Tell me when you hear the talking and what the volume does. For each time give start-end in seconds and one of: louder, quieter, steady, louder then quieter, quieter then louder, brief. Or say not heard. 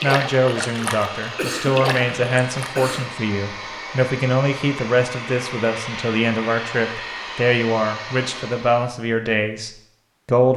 0.0-10.5 steady.